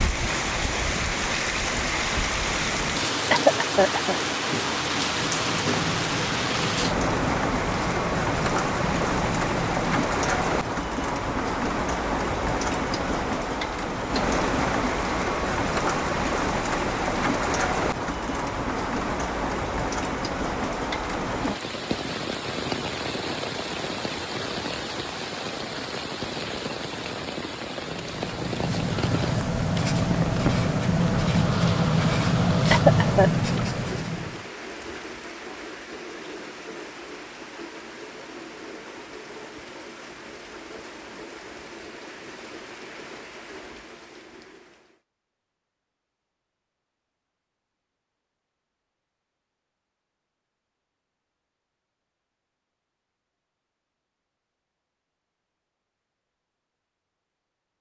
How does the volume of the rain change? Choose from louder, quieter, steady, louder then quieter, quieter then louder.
quieter.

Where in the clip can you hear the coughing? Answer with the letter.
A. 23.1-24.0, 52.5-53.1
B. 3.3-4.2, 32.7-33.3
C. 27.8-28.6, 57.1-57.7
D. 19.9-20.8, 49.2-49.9
B.